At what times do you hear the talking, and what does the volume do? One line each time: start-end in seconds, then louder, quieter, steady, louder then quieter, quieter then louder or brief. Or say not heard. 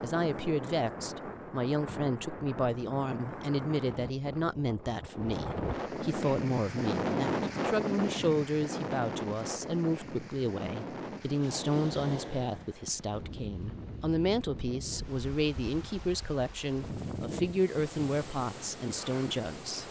0.0-19.8 steady.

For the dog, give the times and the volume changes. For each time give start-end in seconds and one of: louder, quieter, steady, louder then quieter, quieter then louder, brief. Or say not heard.
not heard.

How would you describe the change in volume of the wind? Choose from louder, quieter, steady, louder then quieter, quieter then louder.
louder then quieter.